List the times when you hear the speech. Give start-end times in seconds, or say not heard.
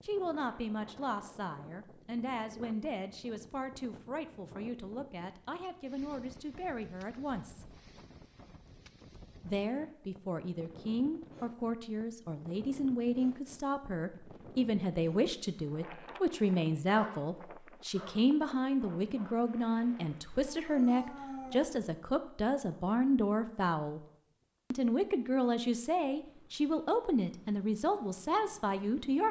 0.1-7.8, 9.4-24.0, 24.7-29.2.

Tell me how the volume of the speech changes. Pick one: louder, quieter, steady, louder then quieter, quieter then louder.
louder.